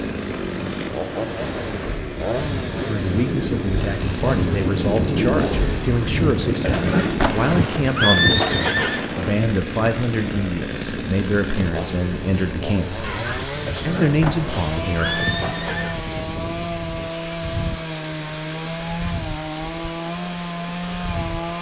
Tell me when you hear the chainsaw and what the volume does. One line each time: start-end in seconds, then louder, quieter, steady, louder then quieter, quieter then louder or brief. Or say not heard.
0.0-21.5 steady.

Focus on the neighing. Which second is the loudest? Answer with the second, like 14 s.
8 s.